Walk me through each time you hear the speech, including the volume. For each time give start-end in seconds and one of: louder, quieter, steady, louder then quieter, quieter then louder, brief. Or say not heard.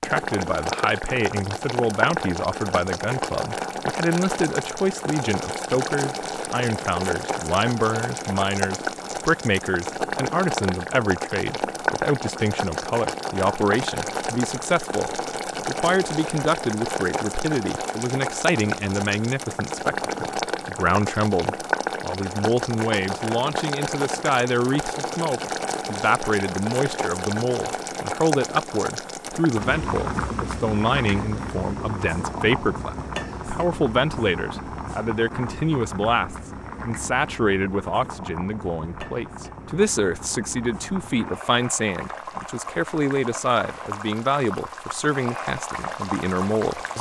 0.0-46.9 steady.